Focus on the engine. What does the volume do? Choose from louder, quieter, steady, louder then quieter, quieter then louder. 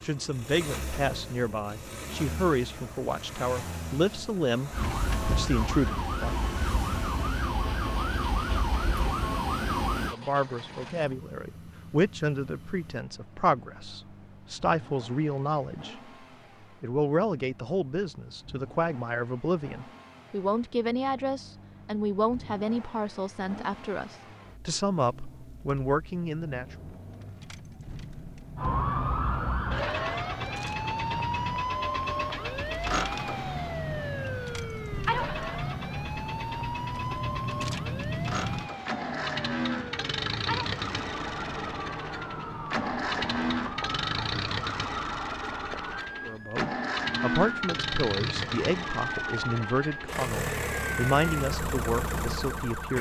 quieter then louder.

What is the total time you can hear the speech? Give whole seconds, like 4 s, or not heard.
29 s.